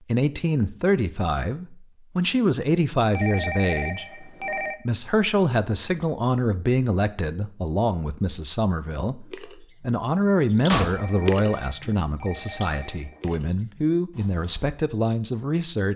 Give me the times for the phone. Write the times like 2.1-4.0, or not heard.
3.1-4.8, 10.9-13.2.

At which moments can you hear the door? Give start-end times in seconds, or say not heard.
10.7-11.6.